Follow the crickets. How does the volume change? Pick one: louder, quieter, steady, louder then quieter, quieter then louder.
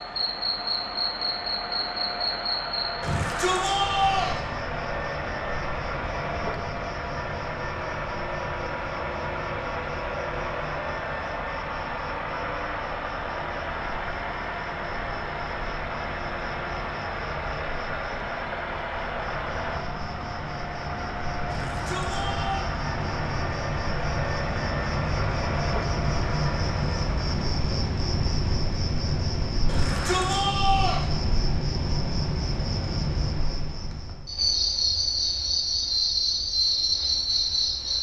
quieter then louder.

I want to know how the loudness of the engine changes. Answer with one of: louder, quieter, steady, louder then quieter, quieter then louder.
steady.